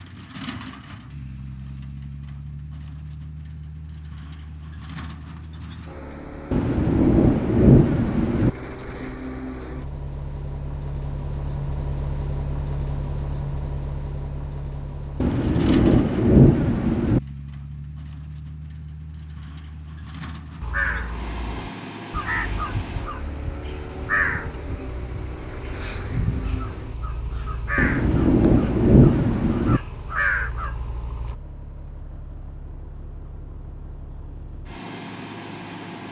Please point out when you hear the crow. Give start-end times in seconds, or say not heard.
20.6-31.4.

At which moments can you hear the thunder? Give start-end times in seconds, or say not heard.
6.5-8.5, 15.2-17.2, 27.8-29.8.